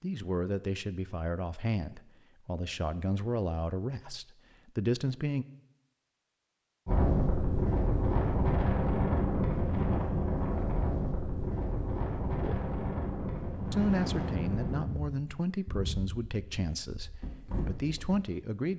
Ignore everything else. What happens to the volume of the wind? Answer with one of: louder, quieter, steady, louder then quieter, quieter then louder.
quieter.